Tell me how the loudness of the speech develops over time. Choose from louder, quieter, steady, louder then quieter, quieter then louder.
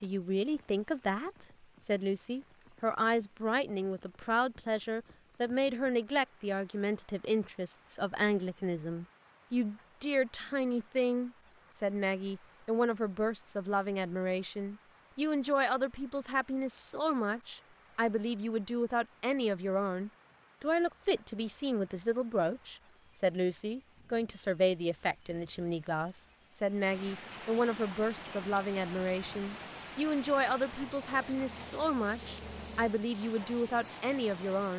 steady.